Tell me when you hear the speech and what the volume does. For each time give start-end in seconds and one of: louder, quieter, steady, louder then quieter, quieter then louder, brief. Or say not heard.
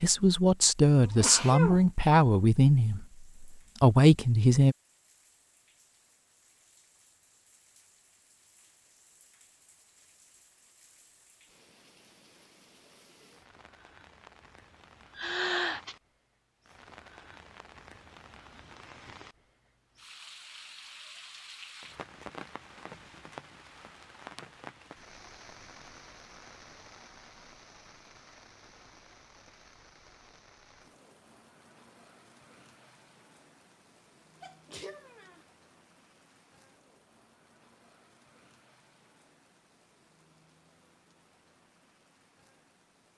0.0-4.8 quieter then louder.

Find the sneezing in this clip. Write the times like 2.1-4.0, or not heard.
1.0-1.9, 15.2-15.9, 34.4-35.5.